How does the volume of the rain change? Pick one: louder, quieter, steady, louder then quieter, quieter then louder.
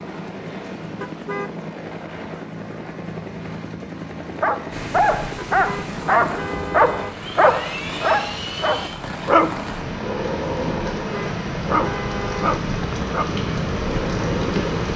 louder.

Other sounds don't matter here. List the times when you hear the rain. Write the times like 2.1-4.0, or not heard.
4.7-14.9.